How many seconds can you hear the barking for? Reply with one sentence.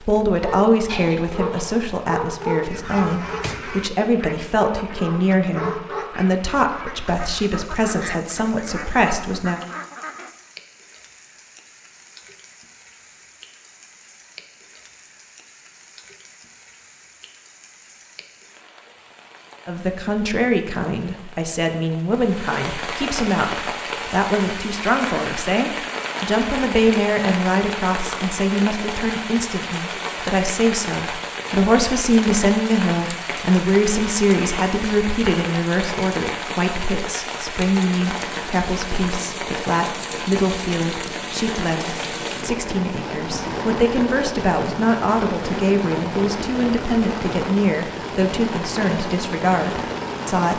The barking can be heard for 6 seconds in total.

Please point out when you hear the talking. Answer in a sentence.
The talking can be heard from 0.0 to 9.6 s and from 19.6 to 50.5 s.